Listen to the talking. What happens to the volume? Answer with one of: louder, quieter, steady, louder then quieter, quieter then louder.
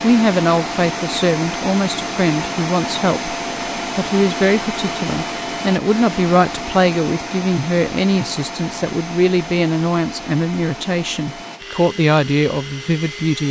steady.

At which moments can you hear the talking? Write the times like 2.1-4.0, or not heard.
0.0-3.4, 4.0-13.4.